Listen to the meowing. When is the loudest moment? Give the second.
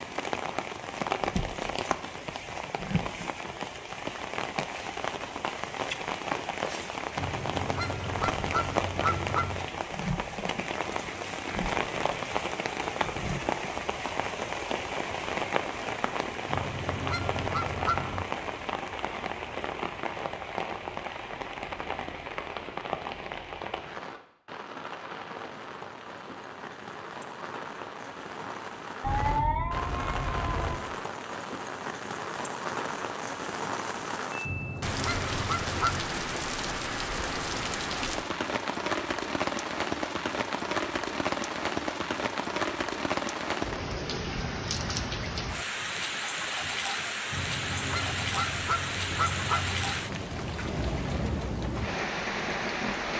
29 s.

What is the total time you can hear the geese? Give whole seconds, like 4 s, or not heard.
9 s.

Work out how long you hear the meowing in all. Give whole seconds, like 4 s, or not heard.
2 s.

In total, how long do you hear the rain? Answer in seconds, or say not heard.
53 s.